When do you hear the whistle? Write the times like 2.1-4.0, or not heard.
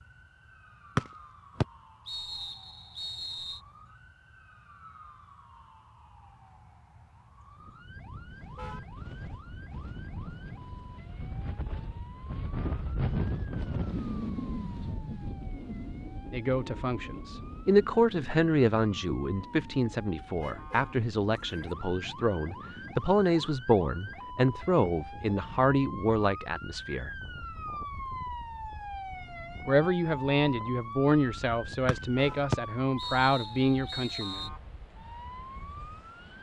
0.9-3.6, 31.9-34.5.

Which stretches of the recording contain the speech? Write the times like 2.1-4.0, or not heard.
16.3-27.1, 29.6-34.5.